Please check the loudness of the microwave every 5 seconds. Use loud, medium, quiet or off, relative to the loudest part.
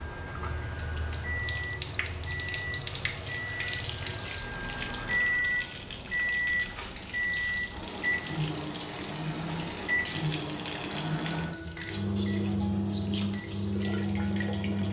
medium, loud, loud.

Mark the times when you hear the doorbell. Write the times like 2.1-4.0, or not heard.
0.5-1.2, 5.0-5.8, 10.9-11.9.